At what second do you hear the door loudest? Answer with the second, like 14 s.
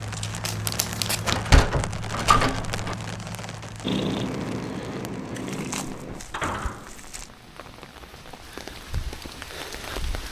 2 s.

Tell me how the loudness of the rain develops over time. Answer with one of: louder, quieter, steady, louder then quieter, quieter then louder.
quieter then louder.